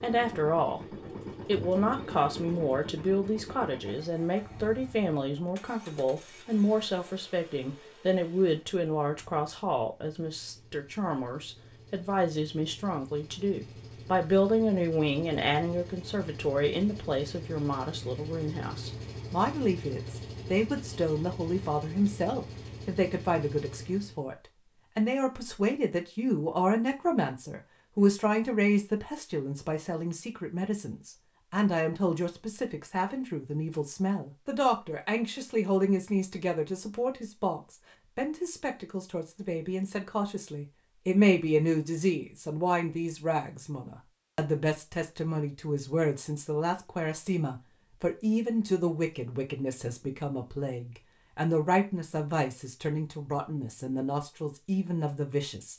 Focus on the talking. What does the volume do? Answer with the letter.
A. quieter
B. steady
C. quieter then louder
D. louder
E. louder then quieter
B.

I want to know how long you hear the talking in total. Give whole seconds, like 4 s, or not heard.
55 s.